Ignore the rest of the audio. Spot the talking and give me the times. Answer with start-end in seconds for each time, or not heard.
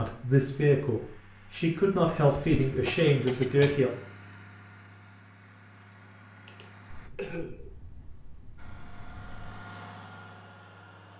0.0-3.9.